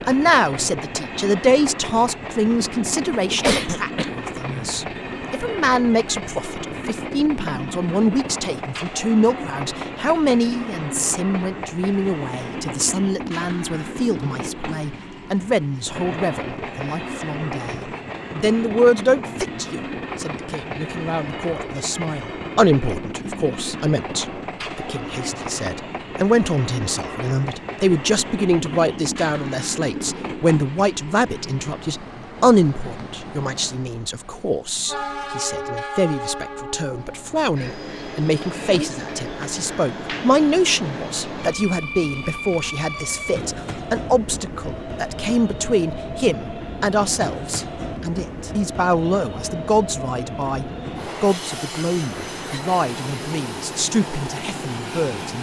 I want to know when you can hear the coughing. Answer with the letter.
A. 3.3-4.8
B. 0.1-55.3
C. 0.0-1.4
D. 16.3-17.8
A.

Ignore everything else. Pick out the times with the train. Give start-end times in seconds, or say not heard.
0.0-55.3.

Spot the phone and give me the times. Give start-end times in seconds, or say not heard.
not heard.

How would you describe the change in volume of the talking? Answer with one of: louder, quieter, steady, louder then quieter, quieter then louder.
steady.